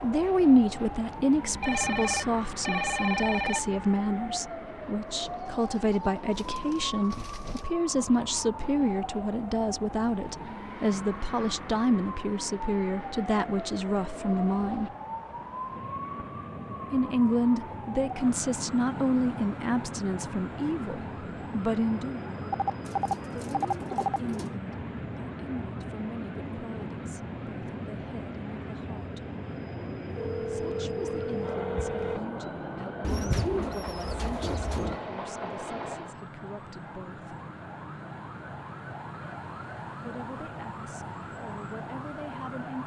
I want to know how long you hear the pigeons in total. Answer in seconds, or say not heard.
6 s.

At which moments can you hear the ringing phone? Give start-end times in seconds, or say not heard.
1.6-3.8, 22.5-24.2, 30.1-32.2.